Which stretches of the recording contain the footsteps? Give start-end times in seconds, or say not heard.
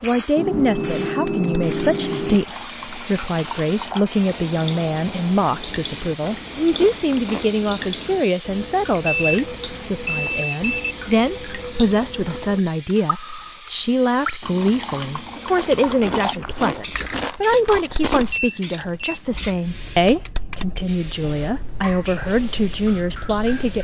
not heard.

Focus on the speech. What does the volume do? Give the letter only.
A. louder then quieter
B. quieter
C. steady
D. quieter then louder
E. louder
C.